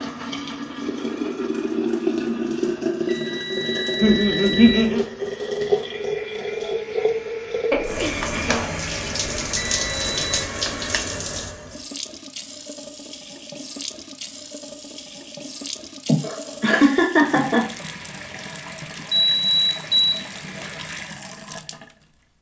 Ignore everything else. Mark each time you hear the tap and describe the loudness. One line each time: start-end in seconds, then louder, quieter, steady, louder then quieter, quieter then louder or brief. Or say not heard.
0.0-22.1 quieter.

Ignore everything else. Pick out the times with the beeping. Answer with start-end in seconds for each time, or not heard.
3.0-4.9, 9.3-10.4, 19.1-20.8.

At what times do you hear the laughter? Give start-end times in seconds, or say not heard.
4.0-5.0, 7.7-8.7, 16.1-17.6.